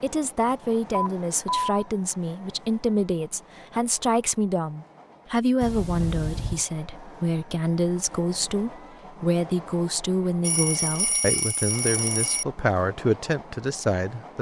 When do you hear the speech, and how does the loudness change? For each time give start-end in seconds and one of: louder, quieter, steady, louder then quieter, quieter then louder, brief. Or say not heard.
0.0-14.3 steady.